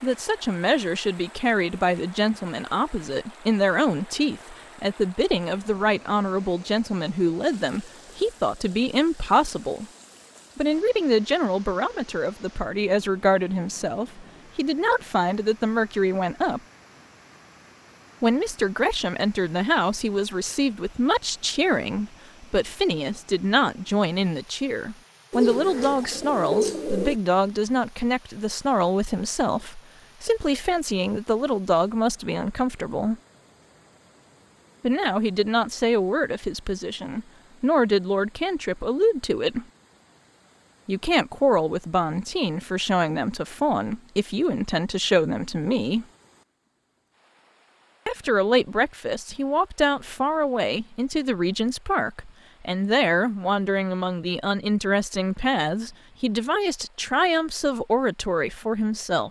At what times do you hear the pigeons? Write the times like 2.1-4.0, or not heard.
25.3-27.2.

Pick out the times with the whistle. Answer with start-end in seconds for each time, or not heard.
not heard.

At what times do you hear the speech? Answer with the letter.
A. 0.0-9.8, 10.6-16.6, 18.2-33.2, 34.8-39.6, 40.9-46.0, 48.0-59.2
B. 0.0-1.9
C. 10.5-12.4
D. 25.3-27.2
A.